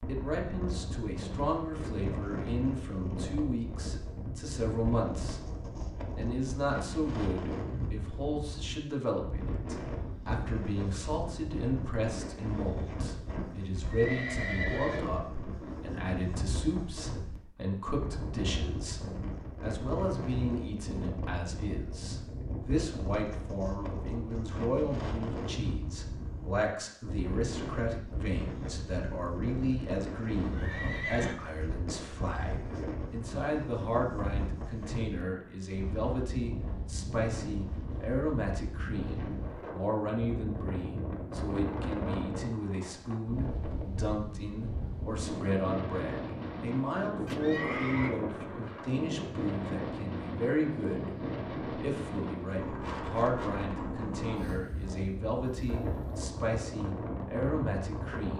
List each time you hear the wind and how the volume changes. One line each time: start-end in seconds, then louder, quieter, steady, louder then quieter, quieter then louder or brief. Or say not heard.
0.0-58.3 steady.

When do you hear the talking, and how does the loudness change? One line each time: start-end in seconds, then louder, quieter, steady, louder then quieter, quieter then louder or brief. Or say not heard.
0.0-58.3 steady.